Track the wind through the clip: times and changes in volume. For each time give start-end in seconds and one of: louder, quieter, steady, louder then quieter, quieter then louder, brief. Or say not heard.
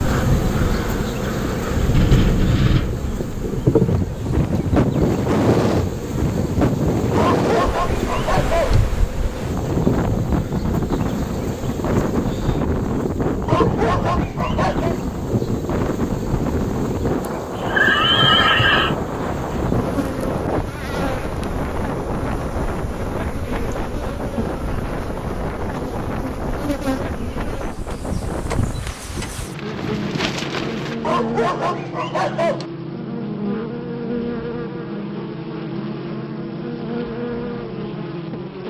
0.0-31.2 quieter.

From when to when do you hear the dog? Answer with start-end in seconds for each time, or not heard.
7.2-8.8, 13.4-14.9, 31.0-32.6.